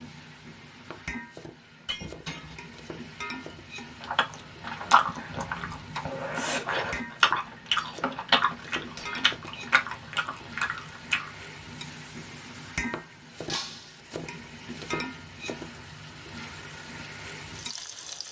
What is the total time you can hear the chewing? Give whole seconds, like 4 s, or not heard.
7 s.